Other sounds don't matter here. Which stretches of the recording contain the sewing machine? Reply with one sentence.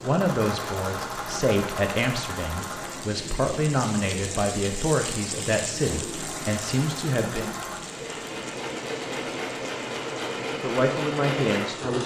You can hear the sewing machine from 0.0 to 3.1 s and from 6.0 to 12.0 s.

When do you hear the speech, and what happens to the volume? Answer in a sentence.
You can hear the speech from 0.0 to 7.5 s, at a steady volume; and briefly from 10.5 to 12.0 s.